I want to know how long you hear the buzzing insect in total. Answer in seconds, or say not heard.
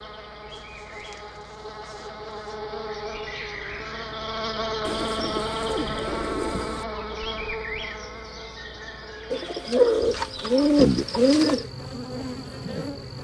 13 s.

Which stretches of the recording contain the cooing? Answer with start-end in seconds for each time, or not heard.
0.5-2.5, 4.8-6.8, 9.3-11.7.